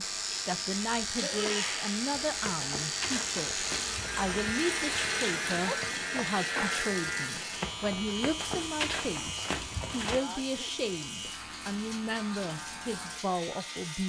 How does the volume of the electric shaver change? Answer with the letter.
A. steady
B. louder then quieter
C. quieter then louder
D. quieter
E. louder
D.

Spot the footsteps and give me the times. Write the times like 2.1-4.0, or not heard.
2.1-10.2.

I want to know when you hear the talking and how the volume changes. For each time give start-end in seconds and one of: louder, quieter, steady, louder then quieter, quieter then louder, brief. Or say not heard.
0.0-14.0 steady.